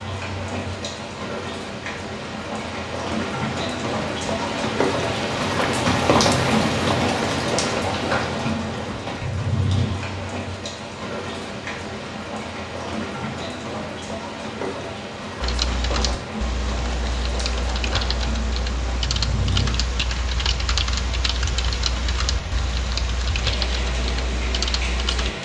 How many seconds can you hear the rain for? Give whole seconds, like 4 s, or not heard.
25 s.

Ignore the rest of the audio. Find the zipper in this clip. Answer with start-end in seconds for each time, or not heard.
not heard.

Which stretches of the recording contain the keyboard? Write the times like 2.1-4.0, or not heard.
15.4-25.3.